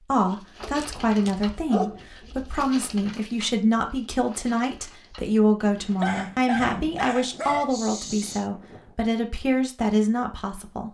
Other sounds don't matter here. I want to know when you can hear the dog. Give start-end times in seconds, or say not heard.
0.6-2.0, 6.0-8.4.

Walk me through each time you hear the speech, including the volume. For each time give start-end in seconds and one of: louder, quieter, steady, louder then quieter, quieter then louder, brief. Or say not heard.
0.1-10.8 steady.